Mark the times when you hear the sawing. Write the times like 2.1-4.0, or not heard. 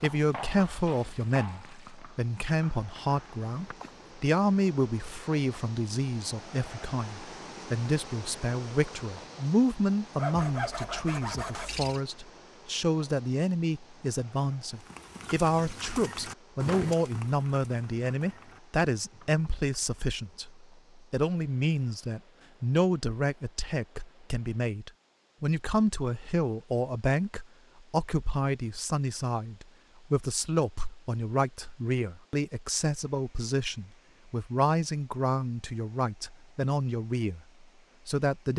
10.2-12.0.